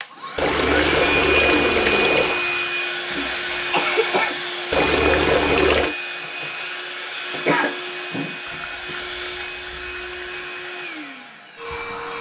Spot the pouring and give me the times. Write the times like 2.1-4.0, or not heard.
0.3-2.4, 4.7-6.0, 8.6-10.2.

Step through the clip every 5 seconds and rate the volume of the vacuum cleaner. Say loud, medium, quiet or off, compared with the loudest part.
loud, medium, medium.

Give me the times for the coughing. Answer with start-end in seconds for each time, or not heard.
3.1-4.3, 7.5-8.3.